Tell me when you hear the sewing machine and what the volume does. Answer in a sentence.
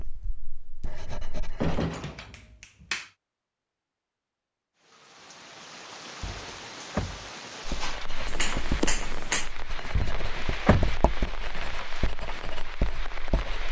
You can't hear the sewing machine here.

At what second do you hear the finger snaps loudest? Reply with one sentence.
The loudest moment of the finger snaps is at 9 seconds.